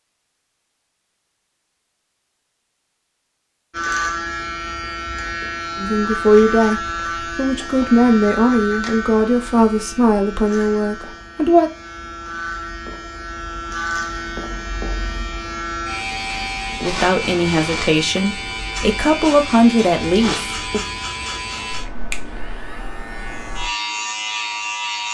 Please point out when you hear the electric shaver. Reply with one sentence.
The electric shaver can be heard from 3.7 to 25.0 s.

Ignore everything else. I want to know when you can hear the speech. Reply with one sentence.
The speech can be heard from 5.8 to 11.7 s and from 16.8 to 20.8 s.